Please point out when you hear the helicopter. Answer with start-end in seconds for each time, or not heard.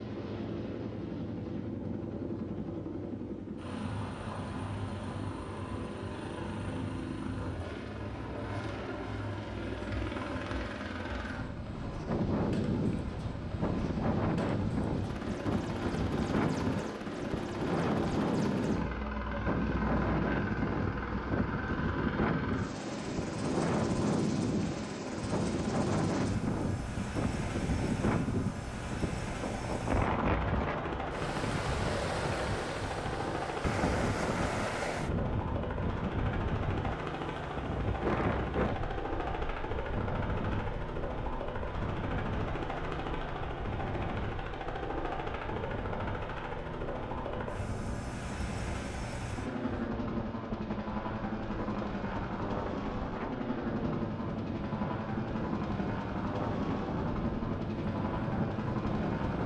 0.0-59.4.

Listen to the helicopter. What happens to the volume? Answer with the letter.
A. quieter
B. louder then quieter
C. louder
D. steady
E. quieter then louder
D.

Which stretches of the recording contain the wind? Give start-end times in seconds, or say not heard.
12.1-59.4.